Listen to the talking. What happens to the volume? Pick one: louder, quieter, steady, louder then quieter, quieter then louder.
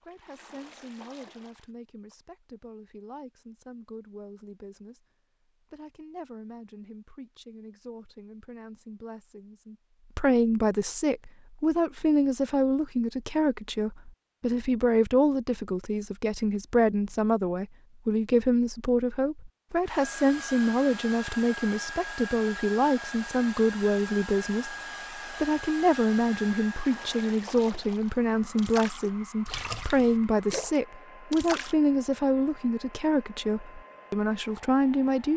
louder.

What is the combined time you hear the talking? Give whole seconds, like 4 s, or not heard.
35 s.